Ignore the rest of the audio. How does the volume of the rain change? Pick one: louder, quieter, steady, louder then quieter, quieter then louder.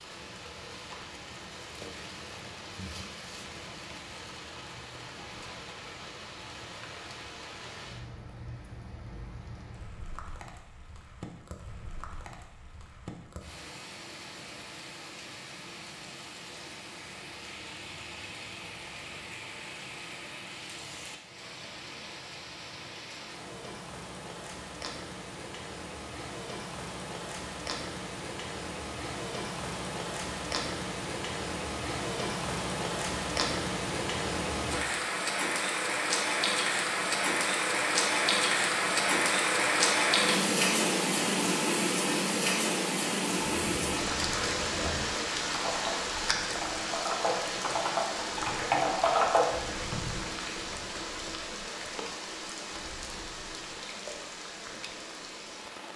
louder then quieter.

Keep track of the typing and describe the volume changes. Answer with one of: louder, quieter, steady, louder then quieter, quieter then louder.
louder.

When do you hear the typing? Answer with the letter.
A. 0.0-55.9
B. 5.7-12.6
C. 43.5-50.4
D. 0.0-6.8
C.